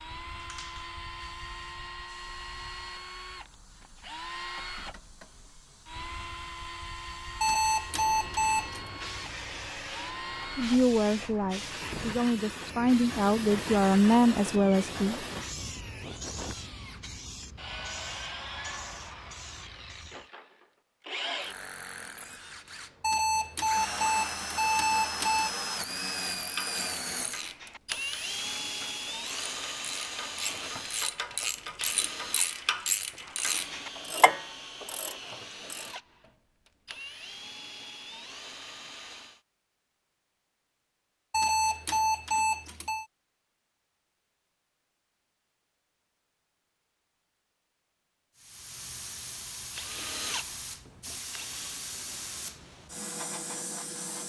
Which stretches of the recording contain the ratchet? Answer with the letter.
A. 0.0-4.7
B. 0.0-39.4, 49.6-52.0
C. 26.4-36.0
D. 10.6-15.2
C.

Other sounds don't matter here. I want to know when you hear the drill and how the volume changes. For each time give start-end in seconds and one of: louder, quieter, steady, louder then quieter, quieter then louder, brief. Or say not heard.
0.0-39.4 louder then quieter
49.6-52.0 brief.